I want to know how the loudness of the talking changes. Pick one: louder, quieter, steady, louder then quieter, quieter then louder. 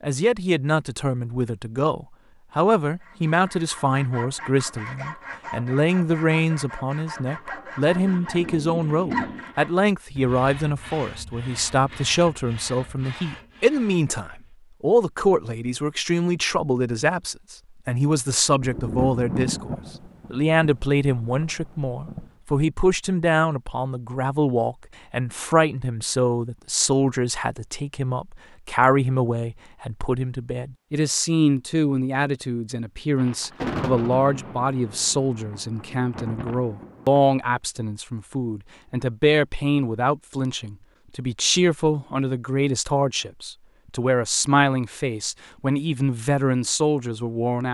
steady.